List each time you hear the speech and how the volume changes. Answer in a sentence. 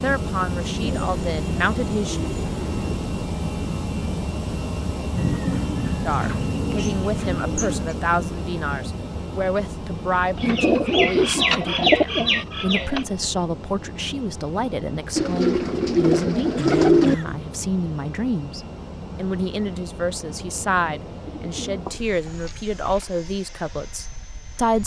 You can hear the speech briefly from 0.0 to 2.2 s; and from 6.0 to 24.8 s, at a steady volume.